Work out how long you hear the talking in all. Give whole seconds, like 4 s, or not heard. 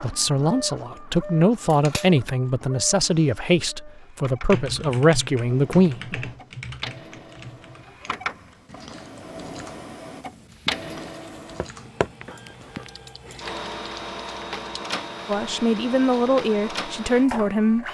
9 s.